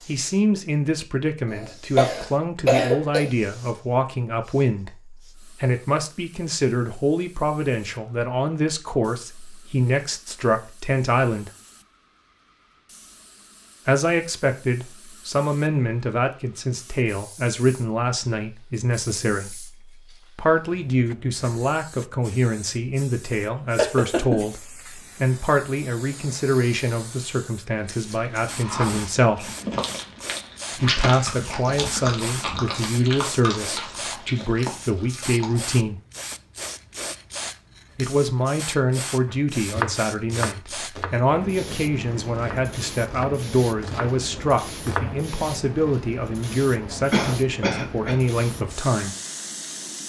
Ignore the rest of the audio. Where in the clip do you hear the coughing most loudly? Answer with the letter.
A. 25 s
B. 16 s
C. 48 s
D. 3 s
D.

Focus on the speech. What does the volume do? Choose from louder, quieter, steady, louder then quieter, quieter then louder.
steady.